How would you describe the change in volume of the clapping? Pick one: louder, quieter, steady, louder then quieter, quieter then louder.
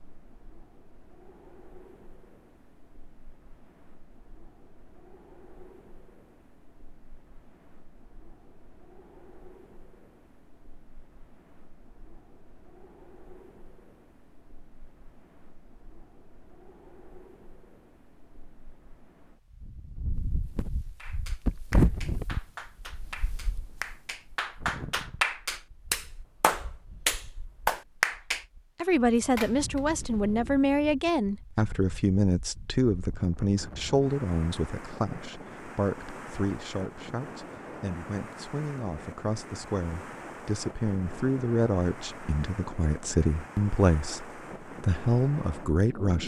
louder.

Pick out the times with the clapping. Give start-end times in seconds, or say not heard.
20.9-28.4.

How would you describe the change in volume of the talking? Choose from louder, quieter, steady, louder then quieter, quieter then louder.
quieter then louder.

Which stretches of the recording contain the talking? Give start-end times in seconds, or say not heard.
28.8-46.2.